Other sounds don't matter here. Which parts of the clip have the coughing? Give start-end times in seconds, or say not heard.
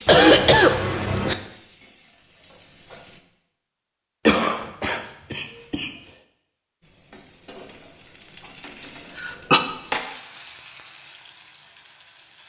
0.1-1.4, 4.2-5.9, 8.8-9.6.